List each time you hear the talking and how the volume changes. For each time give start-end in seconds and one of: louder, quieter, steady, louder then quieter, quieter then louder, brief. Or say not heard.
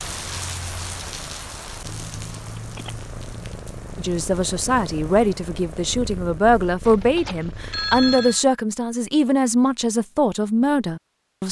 4.0-11.4 steady.